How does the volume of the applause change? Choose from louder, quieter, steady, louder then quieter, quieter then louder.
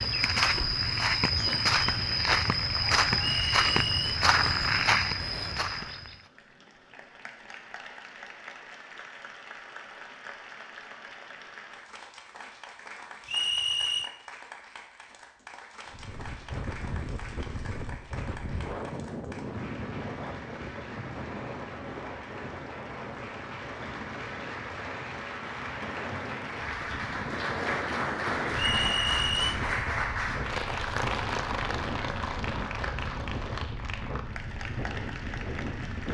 louder.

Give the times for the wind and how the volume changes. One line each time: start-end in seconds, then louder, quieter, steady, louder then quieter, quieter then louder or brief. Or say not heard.
15.8-36.0 steady.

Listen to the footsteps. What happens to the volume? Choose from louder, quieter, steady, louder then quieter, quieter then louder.
steady.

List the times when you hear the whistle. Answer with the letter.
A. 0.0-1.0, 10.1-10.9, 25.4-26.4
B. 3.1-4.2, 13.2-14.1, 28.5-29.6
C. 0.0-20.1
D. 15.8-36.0
B.